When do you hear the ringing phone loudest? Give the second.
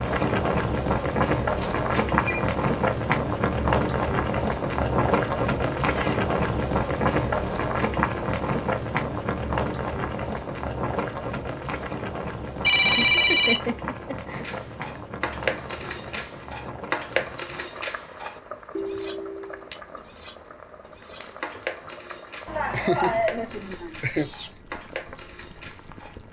13 s.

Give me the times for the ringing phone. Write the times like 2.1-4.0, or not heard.
1.6-2.5, 12.6-13.6, 18.8-19.7.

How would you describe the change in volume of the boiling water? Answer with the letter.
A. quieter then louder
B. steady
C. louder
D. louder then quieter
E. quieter
E.